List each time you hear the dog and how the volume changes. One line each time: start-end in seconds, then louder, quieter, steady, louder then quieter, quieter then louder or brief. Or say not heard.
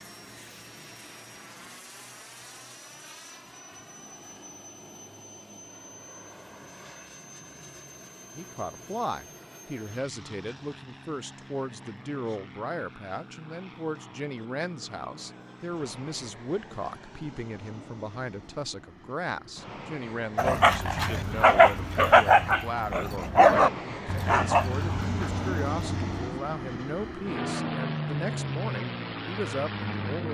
20.4-26.1 quieter.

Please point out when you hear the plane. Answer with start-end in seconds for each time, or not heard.
0.0-30.2.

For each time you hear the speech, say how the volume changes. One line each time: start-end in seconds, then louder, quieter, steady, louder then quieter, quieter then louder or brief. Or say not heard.
8.3-30.2 steady.